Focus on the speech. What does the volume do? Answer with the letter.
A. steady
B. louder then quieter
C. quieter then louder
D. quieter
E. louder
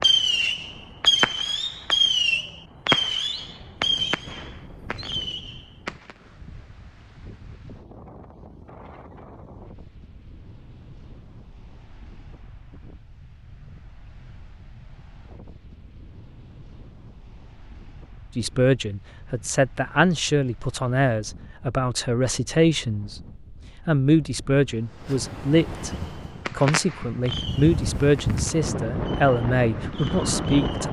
A.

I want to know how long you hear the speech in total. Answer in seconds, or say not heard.
12 s.